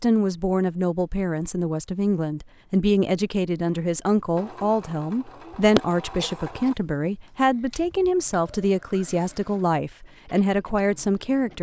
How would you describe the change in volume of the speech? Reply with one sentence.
The volume of the speech stays about the same.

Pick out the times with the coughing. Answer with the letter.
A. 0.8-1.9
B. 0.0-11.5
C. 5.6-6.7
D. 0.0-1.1
C.